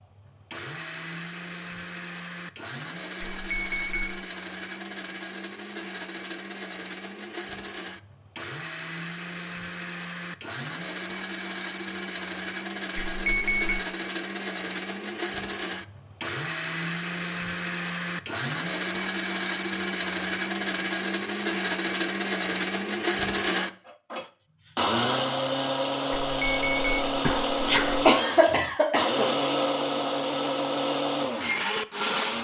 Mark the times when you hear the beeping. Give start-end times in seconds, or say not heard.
3.2-4.2, 12.9-13.8, 26.3-28.1.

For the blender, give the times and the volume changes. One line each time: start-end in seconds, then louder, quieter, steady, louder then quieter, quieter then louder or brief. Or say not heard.
0.0-32.3 louder.